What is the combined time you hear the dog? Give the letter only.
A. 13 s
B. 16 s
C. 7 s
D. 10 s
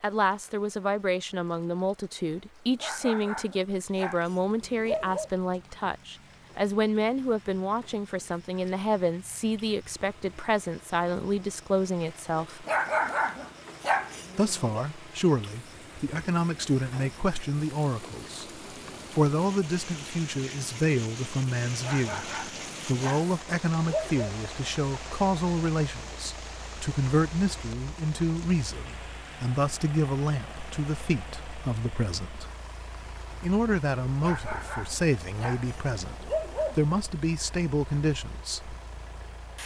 D.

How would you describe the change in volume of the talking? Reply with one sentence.
The loudness of the talking stays about the same.